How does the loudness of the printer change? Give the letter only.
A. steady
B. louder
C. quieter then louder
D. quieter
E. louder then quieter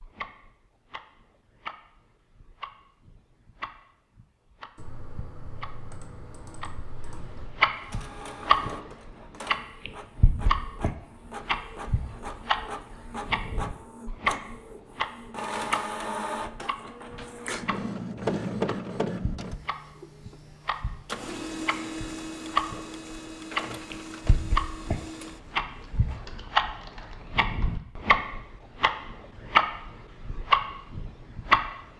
E.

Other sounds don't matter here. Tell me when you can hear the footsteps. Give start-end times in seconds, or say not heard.
not heard.